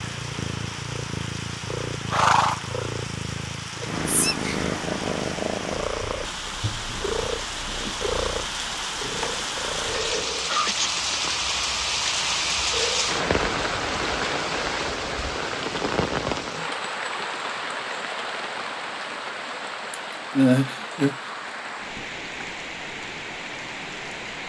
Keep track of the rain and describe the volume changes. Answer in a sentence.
The loudness of the rain goes up, then down.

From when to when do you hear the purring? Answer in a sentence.
You can hear the purring from 0.0 to 10.2 s.